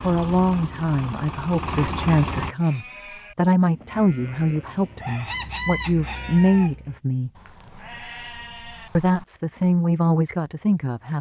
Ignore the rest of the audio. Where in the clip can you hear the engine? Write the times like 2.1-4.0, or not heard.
0.0-2.5.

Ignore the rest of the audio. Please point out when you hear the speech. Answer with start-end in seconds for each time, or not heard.
0.0-7.3, 8.9-11.1.